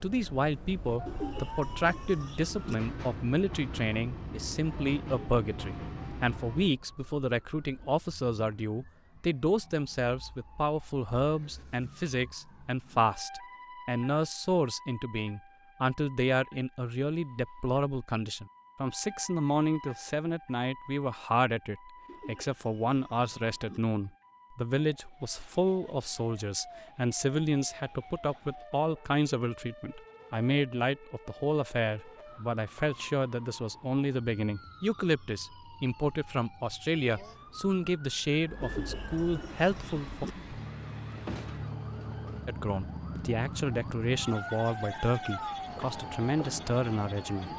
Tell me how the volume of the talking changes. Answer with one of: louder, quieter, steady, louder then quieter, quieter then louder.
steady.